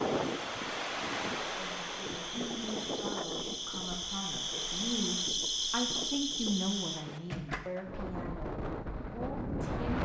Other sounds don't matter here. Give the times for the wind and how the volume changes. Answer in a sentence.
You can hear the wind from 0.0 to 9.9 s, getting quieter then louder.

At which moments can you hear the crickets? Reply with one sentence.
The crickets can be heard from 0.0 to 7.0 s.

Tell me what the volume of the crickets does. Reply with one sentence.
The volume of the crickets goes up.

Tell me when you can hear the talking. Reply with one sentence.
You can hear the talking from 1.6 to 9.9 s.